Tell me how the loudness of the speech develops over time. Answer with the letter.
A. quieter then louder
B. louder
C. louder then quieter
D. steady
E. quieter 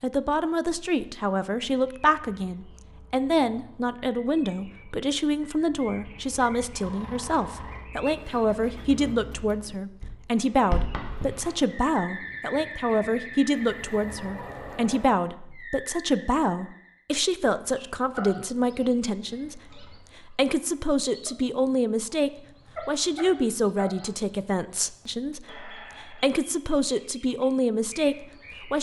D.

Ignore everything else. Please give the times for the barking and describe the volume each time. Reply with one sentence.
The barking can't be heard in this clip.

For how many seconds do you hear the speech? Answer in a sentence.
The speech can be heard for 29 seconds in total.